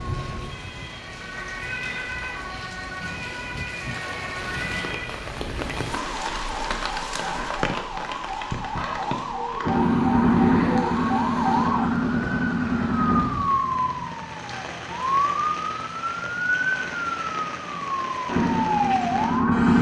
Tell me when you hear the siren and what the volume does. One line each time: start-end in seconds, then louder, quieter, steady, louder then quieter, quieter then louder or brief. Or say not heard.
0.0-19.6 louder.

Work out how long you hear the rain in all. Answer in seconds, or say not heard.
20 s.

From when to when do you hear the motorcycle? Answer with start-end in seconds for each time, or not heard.
9.6-13.2, 18.2-19.7.